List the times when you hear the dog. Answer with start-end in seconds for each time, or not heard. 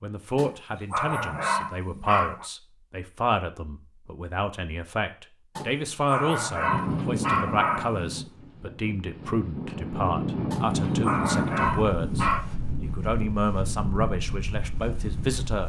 0.3-2.5, 5.5-8.0, 10.5-12.4.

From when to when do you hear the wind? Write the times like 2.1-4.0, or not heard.
6.6-15.6.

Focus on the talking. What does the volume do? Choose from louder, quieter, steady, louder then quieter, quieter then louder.
steady.